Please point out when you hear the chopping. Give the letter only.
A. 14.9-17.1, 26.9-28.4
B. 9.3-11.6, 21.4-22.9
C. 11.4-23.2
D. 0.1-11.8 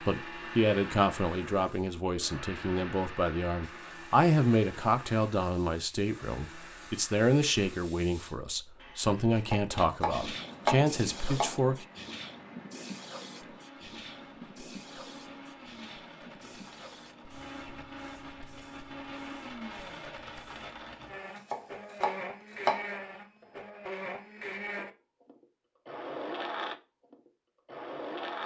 B.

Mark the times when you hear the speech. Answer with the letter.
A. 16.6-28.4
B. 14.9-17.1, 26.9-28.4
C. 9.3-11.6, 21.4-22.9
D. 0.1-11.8
D.